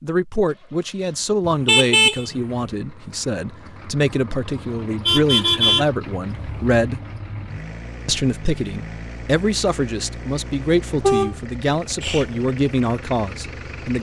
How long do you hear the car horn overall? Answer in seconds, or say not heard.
4 s.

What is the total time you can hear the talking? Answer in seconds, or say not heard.
13 s.